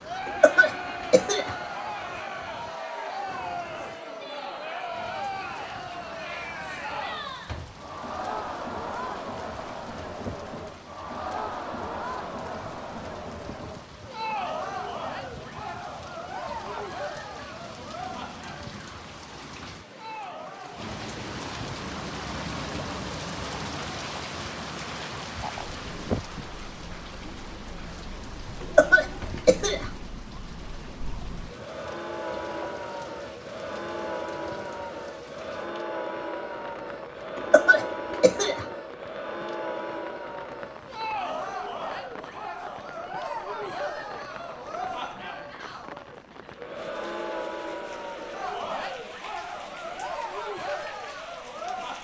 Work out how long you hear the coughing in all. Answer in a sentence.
You can hear the coughing for 4 seconds altogether.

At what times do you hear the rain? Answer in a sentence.
You can hear the rain from 0.0 to 52.0 s.